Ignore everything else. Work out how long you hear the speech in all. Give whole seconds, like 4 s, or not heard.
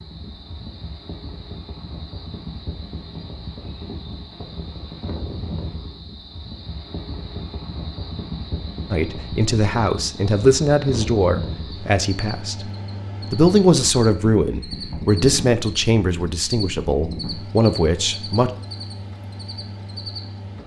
9 s.